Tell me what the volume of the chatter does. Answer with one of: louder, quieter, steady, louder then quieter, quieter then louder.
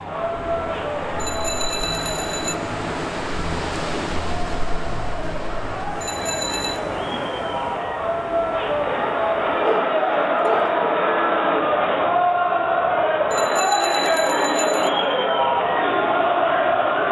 louder.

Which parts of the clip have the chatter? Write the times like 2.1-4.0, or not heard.
0.0-17.0.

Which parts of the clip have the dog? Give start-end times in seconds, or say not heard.
9.6-10.8.